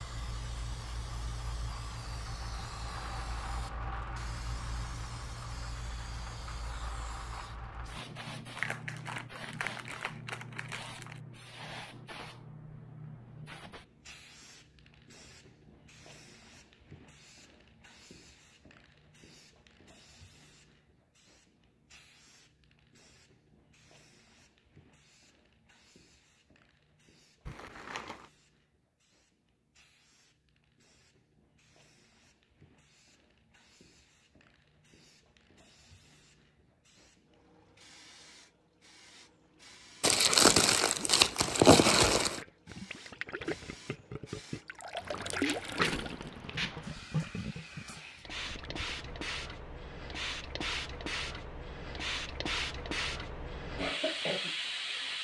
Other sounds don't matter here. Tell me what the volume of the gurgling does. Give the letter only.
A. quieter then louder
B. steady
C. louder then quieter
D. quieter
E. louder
C.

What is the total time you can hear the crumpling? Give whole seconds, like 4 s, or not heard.
6 s.